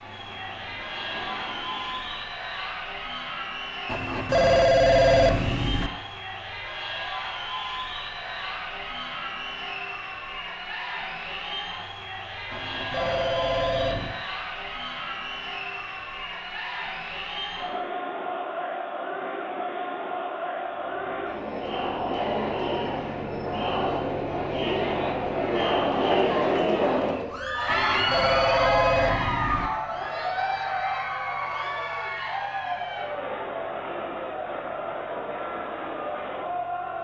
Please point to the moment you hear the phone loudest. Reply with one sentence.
The volume of the phone peaks at 5 seconds.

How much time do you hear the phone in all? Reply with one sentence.
You can hear the phone for 6 seconds altogether.